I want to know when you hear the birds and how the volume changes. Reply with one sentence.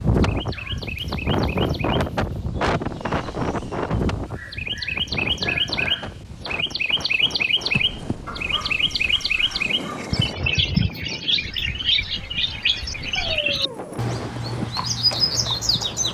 The birds can be heard from 0.1 to 16.0 s, getting louder.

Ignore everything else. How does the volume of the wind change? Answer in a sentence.
The loudness of the wind goes down.